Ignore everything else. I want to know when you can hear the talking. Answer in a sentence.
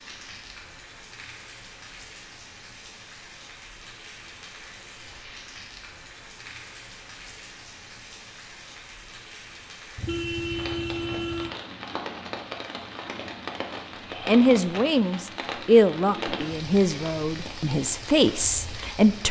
You can hear the talking from 14.2 to 19.2 s.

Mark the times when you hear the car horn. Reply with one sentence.
The car horn can be heard from 9.9 to 11.5 s.